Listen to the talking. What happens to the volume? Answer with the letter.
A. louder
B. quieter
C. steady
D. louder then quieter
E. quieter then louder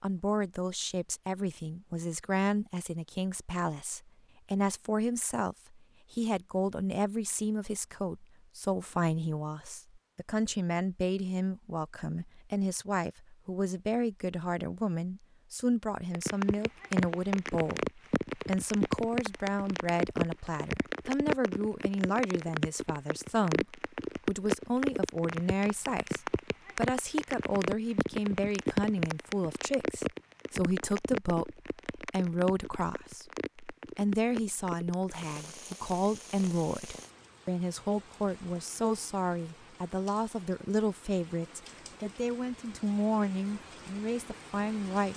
C.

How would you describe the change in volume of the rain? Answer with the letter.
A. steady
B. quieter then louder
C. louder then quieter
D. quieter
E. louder
D.